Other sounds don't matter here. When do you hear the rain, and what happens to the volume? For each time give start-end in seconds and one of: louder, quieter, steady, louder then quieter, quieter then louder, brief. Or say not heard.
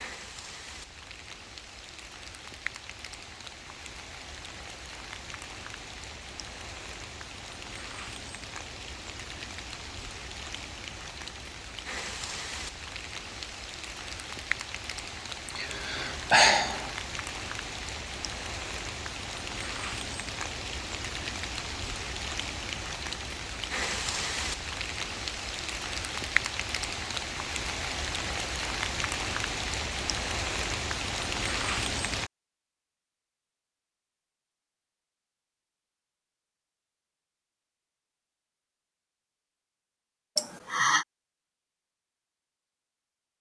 0.0-32.3 louder.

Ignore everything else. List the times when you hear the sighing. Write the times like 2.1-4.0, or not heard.
15.4-16.9, 40.4-41.0.